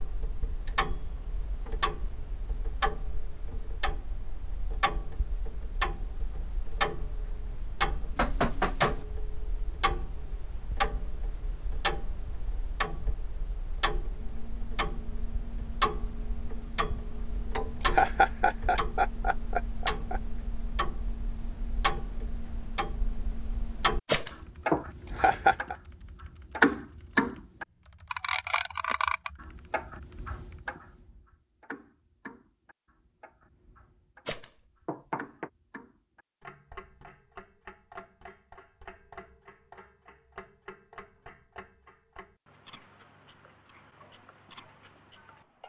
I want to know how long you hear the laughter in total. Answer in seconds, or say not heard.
3 s.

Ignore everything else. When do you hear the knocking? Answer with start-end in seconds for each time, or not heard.
8.2-9.1, 24.1-24.9, 34.2-35.5.